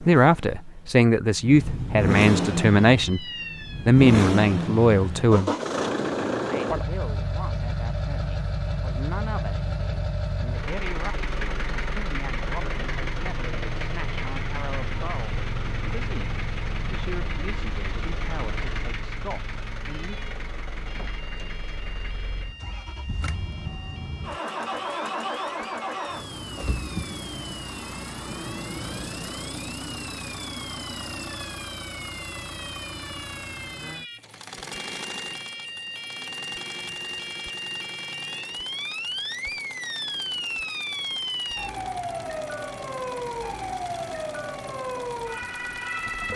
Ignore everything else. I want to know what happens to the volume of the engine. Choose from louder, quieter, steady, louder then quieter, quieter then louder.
quieter.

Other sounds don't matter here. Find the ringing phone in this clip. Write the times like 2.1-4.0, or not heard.
not heard.